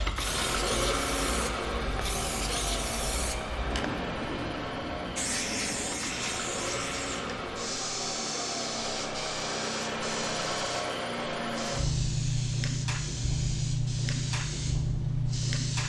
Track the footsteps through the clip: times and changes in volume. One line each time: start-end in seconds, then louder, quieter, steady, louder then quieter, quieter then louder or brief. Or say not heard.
not heard.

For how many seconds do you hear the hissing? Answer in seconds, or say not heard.
16 s.